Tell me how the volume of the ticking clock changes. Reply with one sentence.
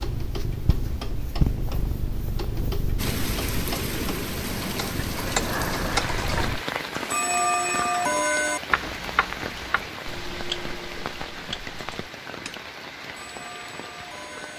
The loudness of the ticking clock goes up, then down.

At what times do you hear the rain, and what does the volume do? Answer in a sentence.
You can hear the rain from 3.0 to 14.5 s, getting quieter.